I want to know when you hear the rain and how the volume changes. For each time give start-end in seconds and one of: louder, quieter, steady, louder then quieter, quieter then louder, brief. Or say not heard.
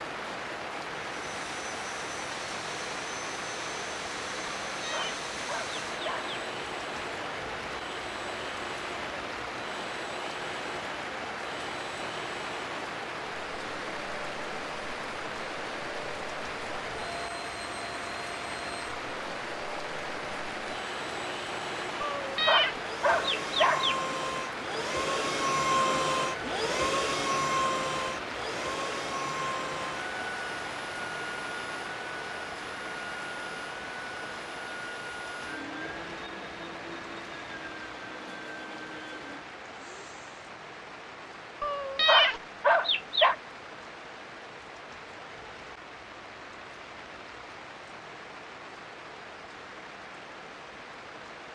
0.0-51.5 quieter.